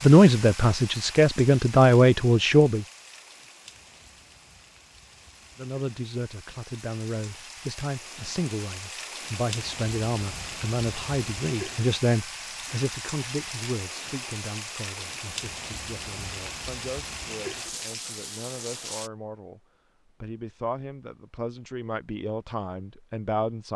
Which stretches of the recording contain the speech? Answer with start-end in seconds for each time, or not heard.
0.0-2.9, 5.5-19.6, 20.2-23.7.